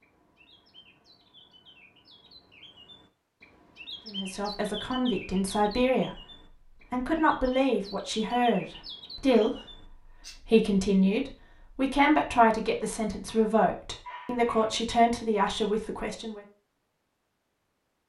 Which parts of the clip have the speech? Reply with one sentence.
You can hear the speech from 4.0 to 6.2 s and from 6.9 to 16.4 s.